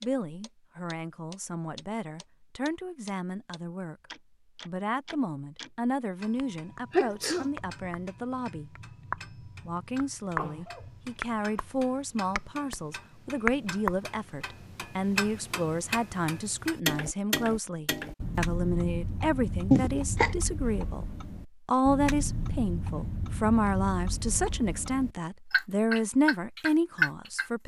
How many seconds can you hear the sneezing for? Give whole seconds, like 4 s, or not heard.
2 s.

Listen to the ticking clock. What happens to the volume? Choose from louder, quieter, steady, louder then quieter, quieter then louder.
louder.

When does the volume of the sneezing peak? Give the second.
20 s.